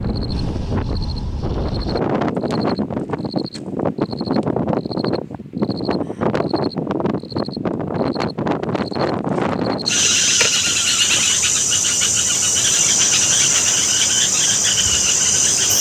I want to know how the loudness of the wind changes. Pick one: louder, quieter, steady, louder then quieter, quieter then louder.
steady.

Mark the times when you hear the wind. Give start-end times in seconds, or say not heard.
0.0-11.3.